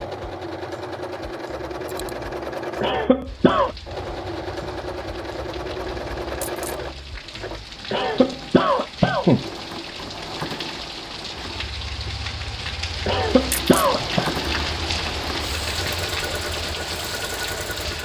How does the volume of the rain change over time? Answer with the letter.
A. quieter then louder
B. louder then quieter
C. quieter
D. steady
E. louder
E.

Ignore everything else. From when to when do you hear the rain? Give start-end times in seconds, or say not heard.
3.2-18.0.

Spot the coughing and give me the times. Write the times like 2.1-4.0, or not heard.
2.8-3.8, 7.9-9.4, 13.1-14.3.